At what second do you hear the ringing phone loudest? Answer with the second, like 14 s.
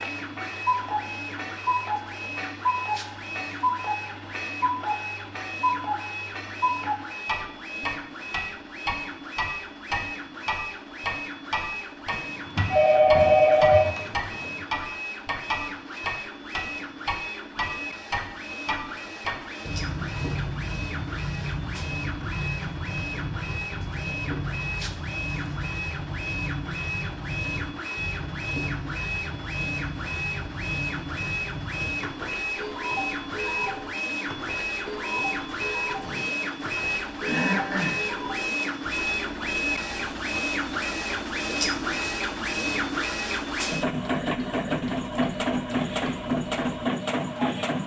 13 s.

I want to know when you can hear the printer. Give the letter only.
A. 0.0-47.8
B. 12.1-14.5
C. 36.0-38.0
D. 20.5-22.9
A.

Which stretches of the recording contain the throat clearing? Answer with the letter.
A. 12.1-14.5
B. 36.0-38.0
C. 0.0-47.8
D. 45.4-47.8
B.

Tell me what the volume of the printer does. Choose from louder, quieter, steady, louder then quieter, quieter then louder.
louder.